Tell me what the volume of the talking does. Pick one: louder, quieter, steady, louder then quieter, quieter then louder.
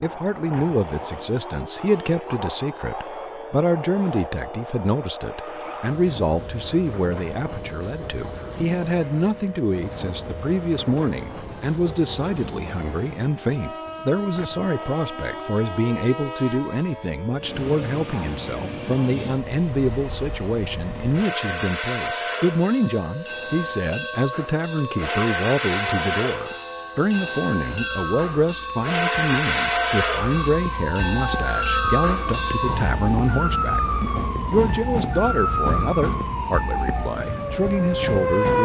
steady.